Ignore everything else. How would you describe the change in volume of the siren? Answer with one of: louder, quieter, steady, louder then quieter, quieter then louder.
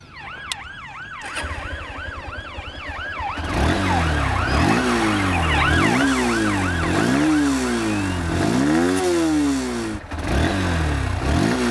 louder then quieter.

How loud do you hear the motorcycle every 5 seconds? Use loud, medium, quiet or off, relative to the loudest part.
medium, loud, loud.